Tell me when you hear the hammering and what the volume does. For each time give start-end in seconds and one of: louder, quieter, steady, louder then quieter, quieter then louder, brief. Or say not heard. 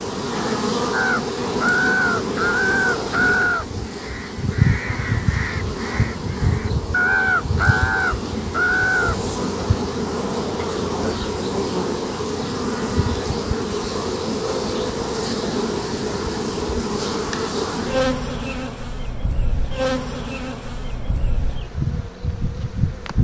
not heard.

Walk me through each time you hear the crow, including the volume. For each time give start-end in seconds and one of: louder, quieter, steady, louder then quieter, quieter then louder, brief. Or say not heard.
0.9-9.2 quieter then louder.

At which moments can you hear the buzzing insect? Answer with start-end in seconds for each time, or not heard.
0.0-23.1.